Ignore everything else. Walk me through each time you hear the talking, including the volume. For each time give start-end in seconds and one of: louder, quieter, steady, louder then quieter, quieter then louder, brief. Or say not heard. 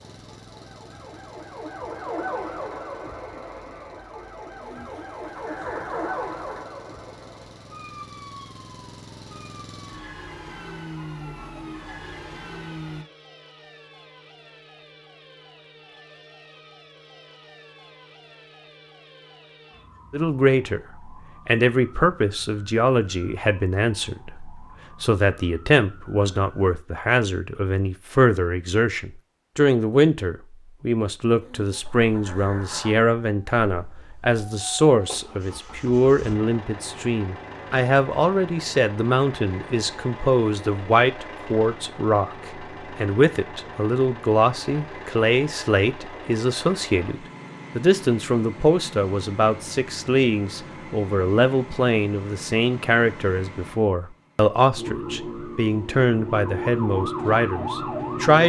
20.1-58.4 steady.